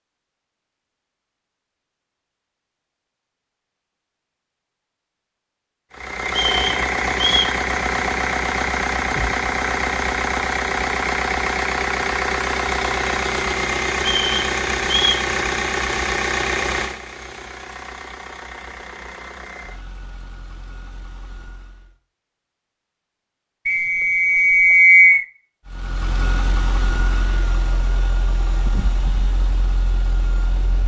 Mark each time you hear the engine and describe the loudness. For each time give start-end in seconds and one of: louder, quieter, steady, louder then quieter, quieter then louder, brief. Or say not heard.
5.9-22.0 quieter
25.6-30.8 quieter.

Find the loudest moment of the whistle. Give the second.
25 s.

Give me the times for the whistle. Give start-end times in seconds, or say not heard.
6.3-7.5, 14.2-15.2, 23.6-25.2.